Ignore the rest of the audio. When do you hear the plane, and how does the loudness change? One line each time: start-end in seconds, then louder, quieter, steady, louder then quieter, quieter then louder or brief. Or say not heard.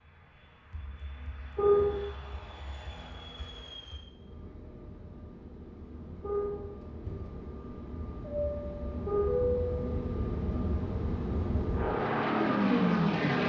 0.0-13.4 louder.